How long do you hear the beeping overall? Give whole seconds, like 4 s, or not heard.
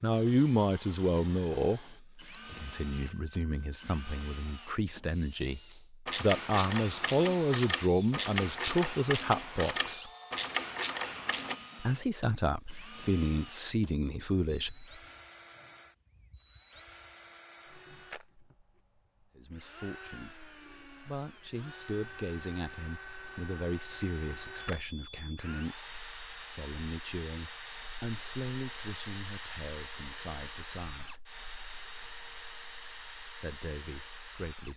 5 s.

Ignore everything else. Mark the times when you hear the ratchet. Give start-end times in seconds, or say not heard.
6.0-11.6.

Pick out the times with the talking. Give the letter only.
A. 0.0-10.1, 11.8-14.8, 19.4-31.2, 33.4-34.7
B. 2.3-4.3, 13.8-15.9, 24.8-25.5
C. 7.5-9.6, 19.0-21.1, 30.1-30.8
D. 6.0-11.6
A.